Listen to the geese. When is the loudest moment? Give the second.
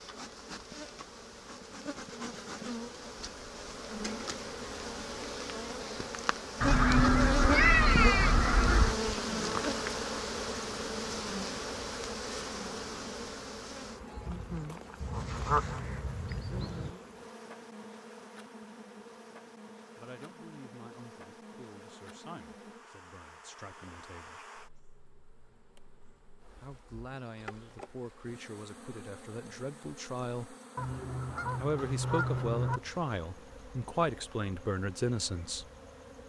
8 s.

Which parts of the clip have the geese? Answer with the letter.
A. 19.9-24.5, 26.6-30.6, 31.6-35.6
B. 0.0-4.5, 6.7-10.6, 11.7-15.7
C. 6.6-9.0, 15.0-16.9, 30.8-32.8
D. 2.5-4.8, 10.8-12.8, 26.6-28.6
C.